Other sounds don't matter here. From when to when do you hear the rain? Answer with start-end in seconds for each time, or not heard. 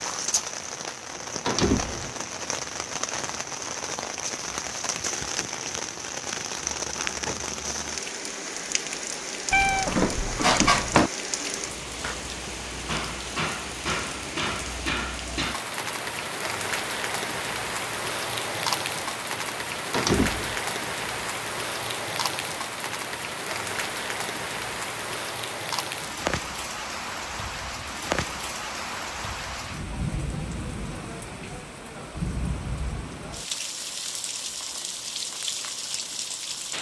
0.0-36.7.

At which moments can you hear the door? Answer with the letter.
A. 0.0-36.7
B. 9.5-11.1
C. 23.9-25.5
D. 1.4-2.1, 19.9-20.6
D.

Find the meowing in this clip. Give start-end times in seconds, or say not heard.
9.5-11.1.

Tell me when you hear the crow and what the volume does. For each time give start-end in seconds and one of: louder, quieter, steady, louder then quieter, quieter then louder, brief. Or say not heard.
not heard.